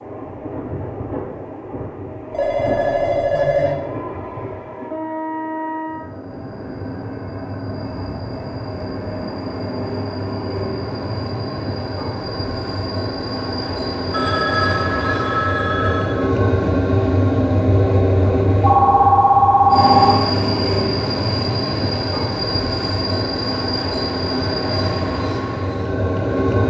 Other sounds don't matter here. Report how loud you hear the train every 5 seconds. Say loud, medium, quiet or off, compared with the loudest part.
medium, medium, medium, loud, loud, loud.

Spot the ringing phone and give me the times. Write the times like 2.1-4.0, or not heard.
2.3-3.8, 14.1-16.1, 18.6-20.1.